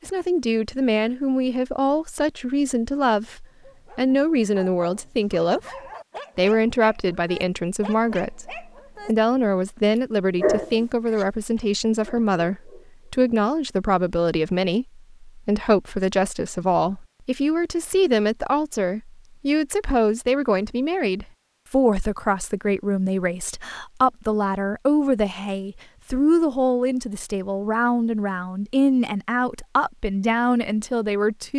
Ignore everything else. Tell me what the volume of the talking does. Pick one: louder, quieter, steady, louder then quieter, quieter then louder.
steady.